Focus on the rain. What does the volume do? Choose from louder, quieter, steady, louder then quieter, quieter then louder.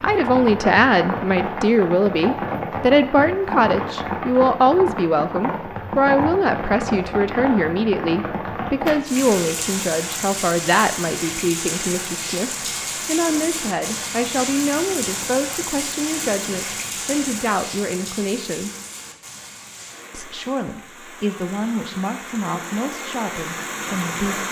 quieter.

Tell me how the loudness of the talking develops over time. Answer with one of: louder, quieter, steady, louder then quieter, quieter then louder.
quieter.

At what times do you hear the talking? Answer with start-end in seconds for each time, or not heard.
0.0-18.7, 20.1-24.4.